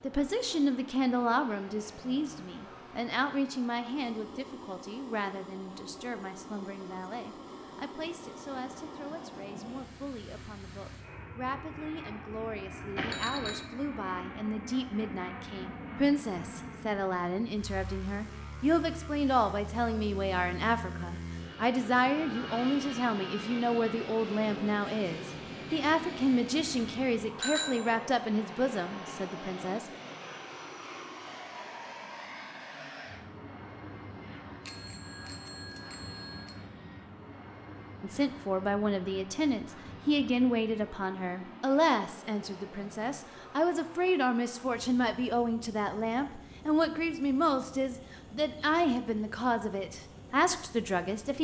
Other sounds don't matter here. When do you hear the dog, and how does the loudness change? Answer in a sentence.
You can't hear the dog here.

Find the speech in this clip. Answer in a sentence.
You can hear the speech from 0.0 to 29.9 s and from 38.0 to 51.3 s.